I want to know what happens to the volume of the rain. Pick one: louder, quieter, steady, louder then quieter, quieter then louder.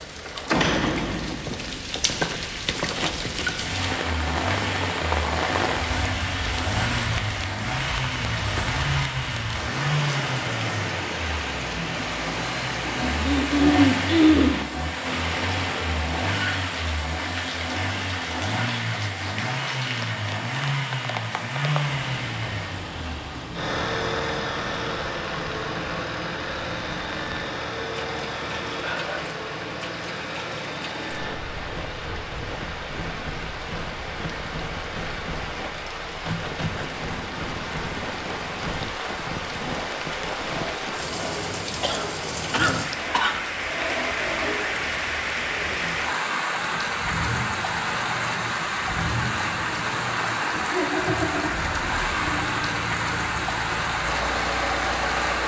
quieter then louder.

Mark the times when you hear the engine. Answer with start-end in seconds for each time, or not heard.
3.5-55.4.